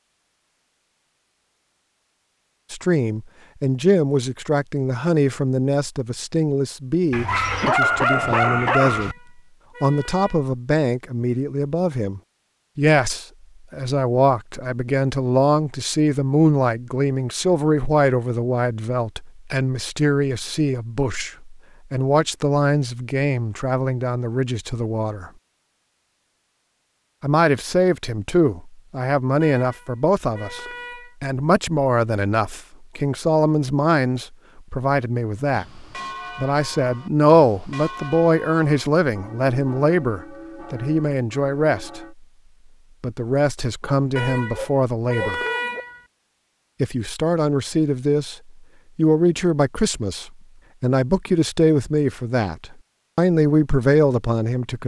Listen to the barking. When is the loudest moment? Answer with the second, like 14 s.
8 s.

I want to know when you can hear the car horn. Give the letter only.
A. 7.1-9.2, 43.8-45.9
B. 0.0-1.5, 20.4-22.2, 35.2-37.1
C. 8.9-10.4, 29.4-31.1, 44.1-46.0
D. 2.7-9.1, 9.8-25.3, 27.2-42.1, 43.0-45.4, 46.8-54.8
C.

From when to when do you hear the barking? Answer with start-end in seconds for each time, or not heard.
7.1-9.2, 43.8-45.9.